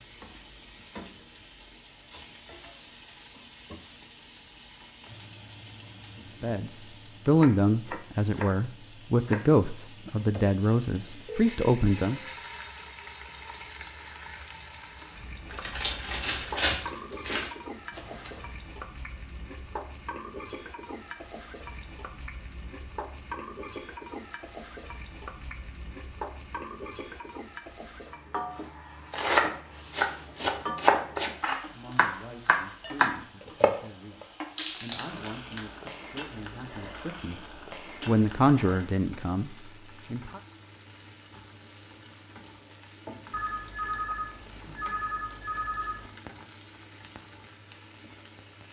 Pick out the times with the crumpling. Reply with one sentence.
You can hear the crumpling from 15.5 to 17.5 s and from 34.5 to 36.0 s.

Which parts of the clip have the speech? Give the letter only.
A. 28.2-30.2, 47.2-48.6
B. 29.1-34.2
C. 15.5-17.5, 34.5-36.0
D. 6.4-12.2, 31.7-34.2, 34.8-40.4
D.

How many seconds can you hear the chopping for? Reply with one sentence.
The chopping can be heard for 5 seconds in total.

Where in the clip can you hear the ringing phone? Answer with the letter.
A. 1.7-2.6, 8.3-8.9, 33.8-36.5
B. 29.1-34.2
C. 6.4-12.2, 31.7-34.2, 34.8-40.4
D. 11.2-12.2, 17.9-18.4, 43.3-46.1
D.